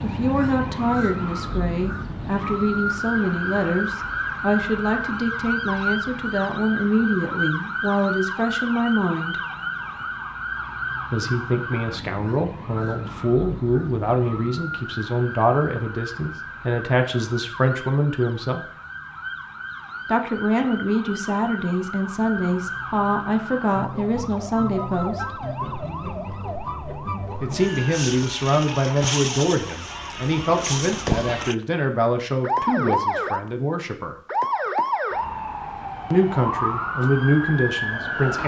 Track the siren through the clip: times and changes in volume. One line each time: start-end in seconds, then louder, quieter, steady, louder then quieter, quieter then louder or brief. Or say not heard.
0.0-38.4 quieter then louder.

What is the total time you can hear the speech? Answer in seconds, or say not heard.
31 s.